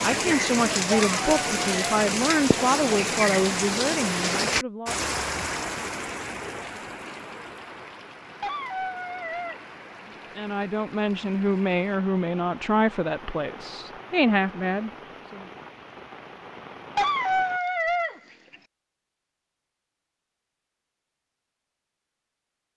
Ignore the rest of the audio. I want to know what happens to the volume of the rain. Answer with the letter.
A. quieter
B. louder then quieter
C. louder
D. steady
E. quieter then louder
A.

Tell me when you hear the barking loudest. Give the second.
17 s.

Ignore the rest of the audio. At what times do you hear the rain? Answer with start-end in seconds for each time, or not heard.
0.0-17.6.